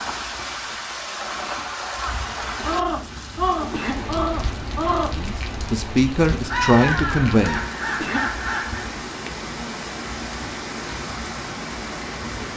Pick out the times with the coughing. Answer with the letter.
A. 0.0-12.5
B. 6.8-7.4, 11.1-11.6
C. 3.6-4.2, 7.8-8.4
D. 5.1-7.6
C.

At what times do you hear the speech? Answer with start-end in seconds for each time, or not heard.
5.1-7.6.